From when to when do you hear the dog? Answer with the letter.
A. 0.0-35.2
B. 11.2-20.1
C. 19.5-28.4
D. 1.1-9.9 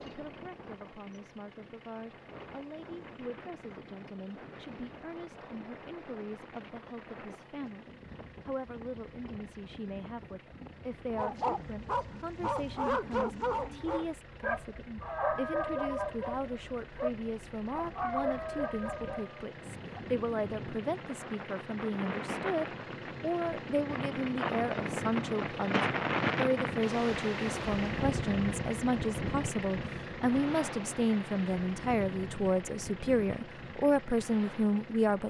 B.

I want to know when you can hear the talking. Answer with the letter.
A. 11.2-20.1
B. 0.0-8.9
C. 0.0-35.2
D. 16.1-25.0
C.